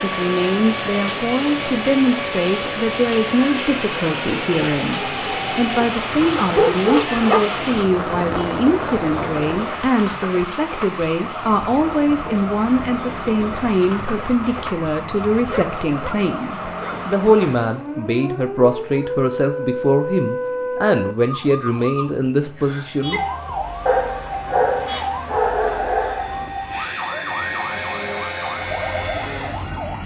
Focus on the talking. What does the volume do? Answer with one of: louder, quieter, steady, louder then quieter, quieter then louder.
steady.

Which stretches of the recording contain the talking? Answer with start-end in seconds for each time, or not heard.
0.0-23.2.